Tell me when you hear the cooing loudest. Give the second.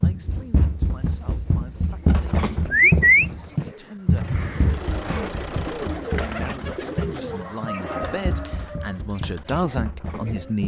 3 s.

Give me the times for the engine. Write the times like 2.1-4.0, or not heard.
4.2-6.0.